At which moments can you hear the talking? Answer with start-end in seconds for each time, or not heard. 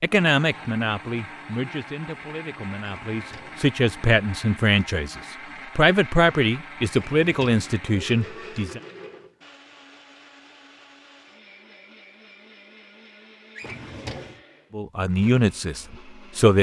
0.0-8.8, 14.7-16.5.